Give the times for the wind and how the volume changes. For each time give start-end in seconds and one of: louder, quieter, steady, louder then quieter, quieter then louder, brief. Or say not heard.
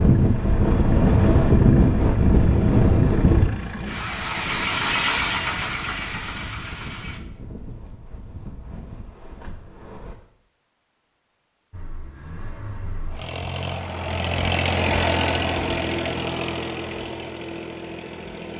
0.0-10.2 quieter.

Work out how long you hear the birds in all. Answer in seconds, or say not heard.
not heard.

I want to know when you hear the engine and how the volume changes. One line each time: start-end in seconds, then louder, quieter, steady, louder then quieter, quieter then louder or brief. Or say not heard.
0.1-7.2 louder then quieter
11.7-18.5 louder then quieter.